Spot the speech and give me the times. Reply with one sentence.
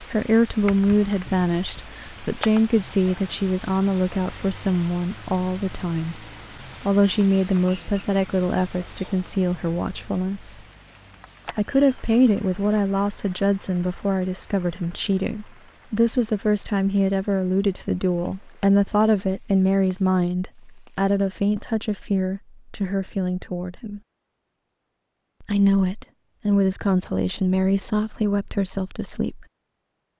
The speech can be heard from 0.0 to 6.2 s, from 6.8 to 10.6 s, from 11.6 to 24.0 s and from 25.4 to 29.4 s.